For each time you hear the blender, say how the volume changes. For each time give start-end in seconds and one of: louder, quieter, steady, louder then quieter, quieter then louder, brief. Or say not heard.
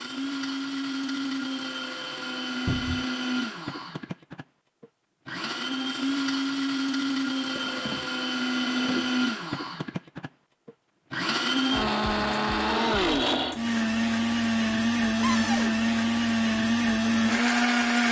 0.0-18.0 louder.